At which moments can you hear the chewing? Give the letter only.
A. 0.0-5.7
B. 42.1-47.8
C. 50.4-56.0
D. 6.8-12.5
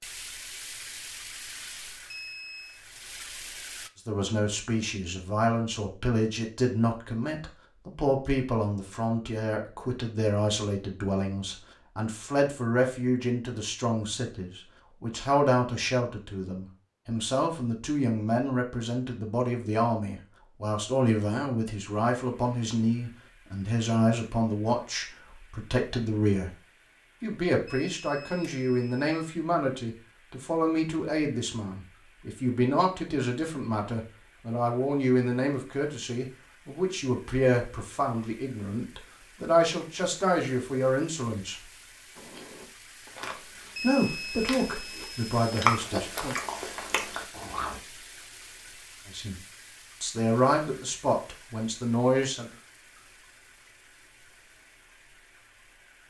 B.